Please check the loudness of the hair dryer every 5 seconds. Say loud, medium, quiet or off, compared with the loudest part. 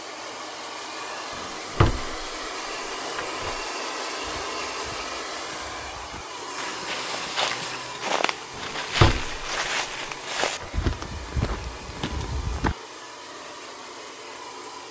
loud, loud, medium.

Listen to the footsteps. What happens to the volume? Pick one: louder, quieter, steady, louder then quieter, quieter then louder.
louder.